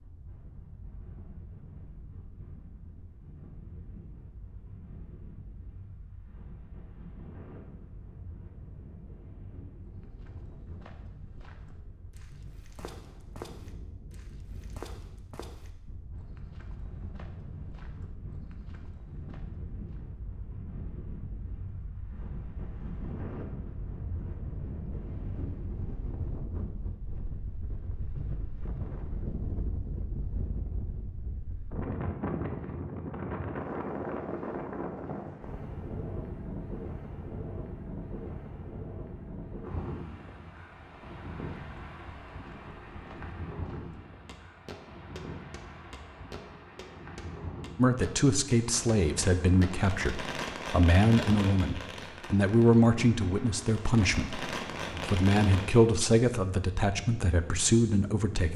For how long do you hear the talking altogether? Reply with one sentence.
You can hear the talking for 11 seconds altogether.